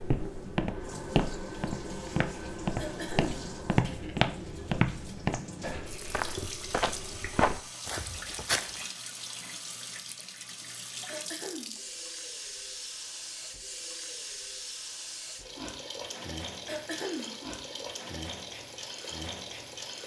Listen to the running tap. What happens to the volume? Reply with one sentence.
The loudness of the running tap stays about the same.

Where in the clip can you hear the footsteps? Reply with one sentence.
The footsteps can be heard from 0.0 to 8.8 s.